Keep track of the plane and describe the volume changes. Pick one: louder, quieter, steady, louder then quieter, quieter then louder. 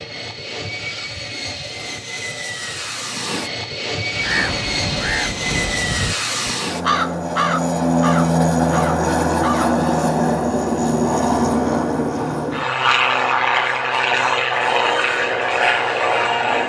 louder.